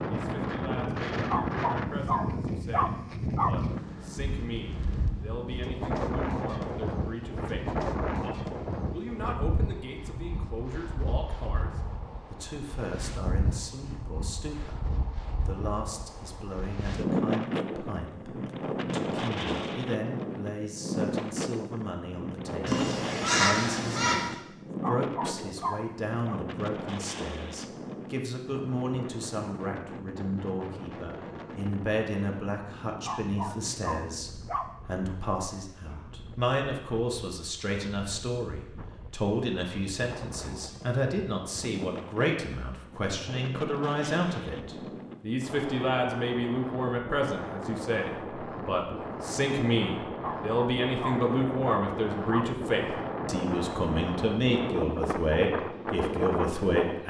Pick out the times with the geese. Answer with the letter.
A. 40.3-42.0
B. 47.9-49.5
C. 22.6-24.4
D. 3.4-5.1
C.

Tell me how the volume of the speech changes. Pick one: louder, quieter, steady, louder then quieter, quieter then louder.
louder.